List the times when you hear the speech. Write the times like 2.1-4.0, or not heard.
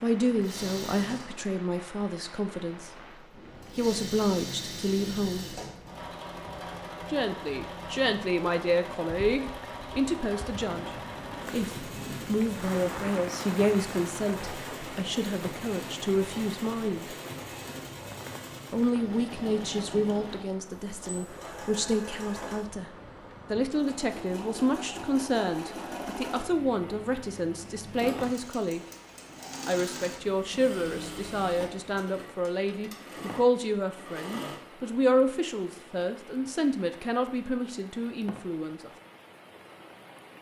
0.0-2.9, 3.8-5.6, 7.1-17.1, 18.7-22.9, 23.5-28.8, 29.6-38.9.